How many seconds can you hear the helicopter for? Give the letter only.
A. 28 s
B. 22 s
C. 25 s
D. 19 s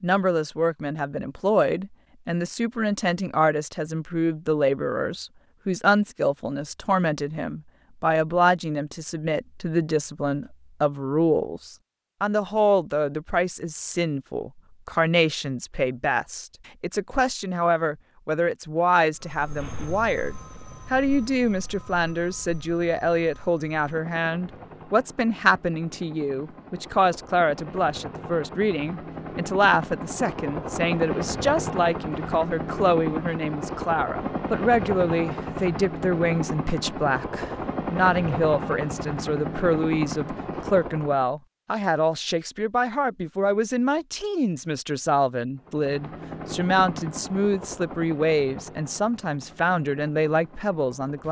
A.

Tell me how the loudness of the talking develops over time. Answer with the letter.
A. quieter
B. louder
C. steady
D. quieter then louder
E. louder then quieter
C.